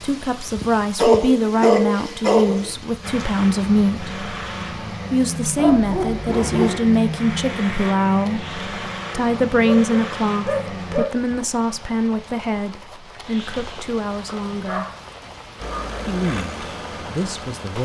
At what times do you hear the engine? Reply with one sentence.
The engine can be heard from 3.0 to 11.1 s and from 15.6 to 17.8 s.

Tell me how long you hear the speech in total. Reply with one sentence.
The speech can be heard for 15 seconds in total.